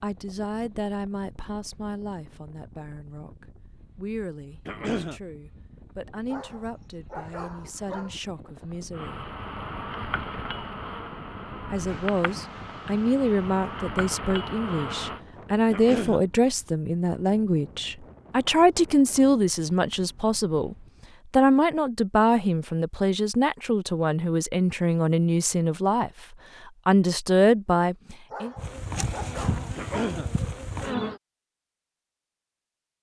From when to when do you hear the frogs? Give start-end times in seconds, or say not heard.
not heard.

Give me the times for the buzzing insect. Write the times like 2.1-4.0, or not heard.
8.9-15.2, 28.6-31.2.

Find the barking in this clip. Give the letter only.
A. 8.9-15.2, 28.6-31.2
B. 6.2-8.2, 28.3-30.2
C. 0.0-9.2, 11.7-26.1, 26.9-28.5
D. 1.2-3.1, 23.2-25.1
B.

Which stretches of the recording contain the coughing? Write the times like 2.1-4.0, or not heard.
4.7-5.2, 15.7-16.2, 29.8-30.3.